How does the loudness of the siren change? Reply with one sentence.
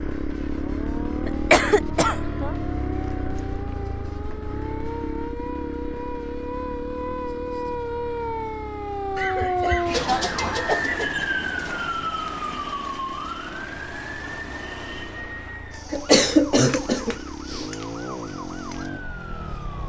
The volume of the siren goes up, then down.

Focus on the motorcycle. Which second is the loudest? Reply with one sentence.
The volume of the motorcycle peaks at 1 second.